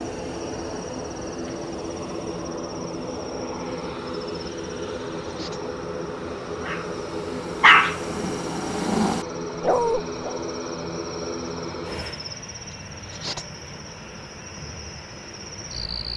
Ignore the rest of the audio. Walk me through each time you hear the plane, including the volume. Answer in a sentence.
You can hear the plane from 0.0 to 16.1 s, getting quieter.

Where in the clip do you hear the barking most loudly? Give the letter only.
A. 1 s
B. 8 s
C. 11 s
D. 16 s
B.